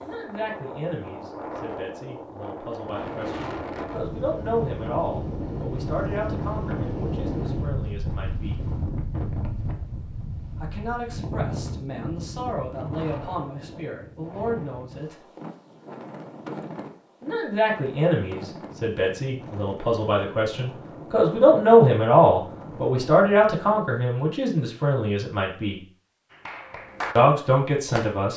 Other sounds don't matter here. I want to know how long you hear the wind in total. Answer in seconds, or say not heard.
24 s.